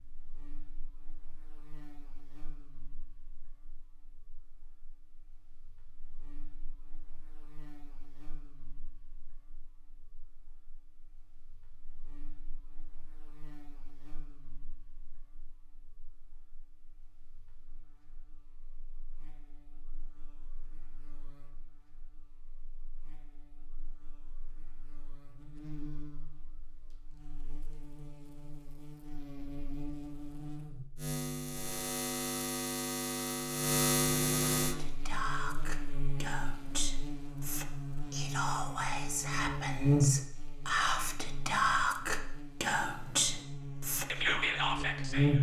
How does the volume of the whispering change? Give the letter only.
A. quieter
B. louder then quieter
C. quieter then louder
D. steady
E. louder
E.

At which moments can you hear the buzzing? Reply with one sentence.
The buzzing can be heard from 0.0 to 45.3 s.